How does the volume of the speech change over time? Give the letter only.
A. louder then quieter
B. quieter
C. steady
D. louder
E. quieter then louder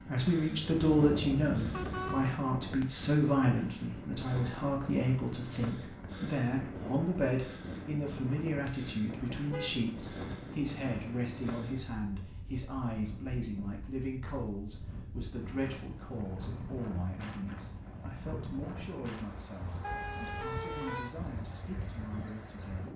B.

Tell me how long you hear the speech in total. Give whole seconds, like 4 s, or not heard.
23 s.